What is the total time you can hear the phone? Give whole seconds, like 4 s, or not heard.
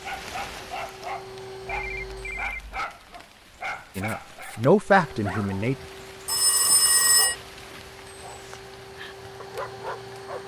2 s.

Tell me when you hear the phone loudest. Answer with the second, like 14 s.
7 s.